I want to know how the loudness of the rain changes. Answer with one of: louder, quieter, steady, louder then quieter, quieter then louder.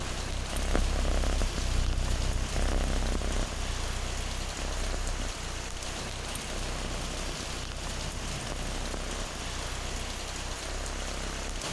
steady.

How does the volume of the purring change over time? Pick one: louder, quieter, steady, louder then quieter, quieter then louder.
quieter.